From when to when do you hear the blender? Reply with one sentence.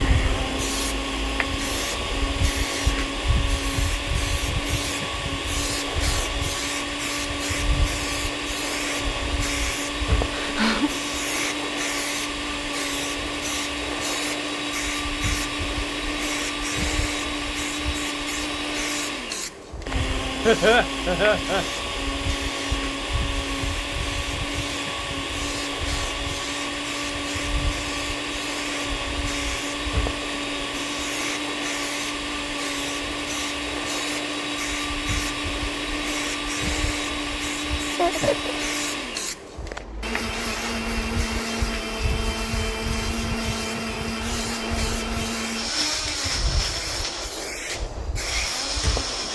You can hear the blender from 0.0 to 49.3 s.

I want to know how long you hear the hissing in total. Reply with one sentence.
You can hear the hissing for 49 seconds altogether.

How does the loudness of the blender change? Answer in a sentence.
The loudness of the blender stays about the same.